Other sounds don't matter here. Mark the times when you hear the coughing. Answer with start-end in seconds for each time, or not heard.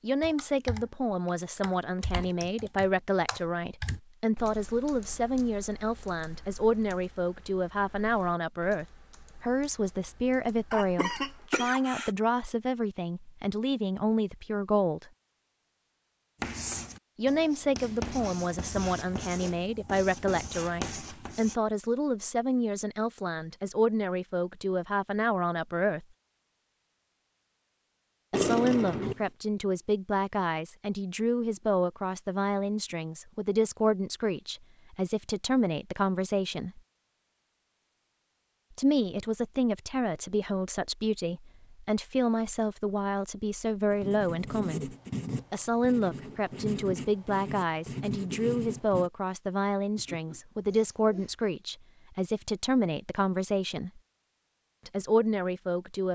10.7-12.1, 28.3-29.2, 50.0-51.4.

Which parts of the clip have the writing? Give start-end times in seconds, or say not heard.
16.4-21.6, 43.9-49.1.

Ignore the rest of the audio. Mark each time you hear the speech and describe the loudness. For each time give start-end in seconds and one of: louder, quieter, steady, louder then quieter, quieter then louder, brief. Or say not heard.
0.0-15.1 steady
17.1-26.1 steady
28.3-36.8 steady
38.8-54.0 steady
54.9-56.1 brief.